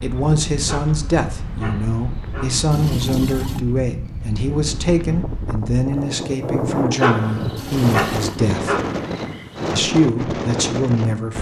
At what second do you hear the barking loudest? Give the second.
7 s.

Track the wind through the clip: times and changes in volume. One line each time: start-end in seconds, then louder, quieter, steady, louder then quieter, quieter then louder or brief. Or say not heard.
0.0-11.3 louder.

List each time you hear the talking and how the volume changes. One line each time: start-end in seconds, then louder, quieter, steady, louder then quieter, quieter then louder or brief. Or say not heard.
0.0-8.8 steady
9.8-11.3 brief.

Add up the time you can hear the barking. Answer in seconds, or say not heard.
5 s.